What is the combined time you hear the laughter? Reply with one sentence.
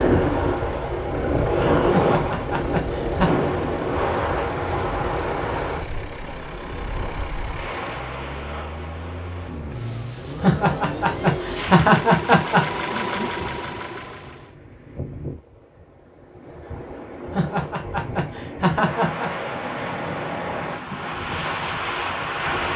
The laughter can be heard for 6 seconds in total.